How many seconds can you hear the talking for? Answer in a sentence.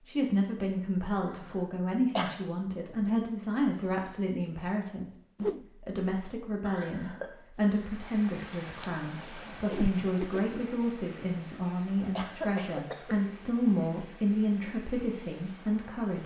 You can hear the talking for 16 seconds altogether.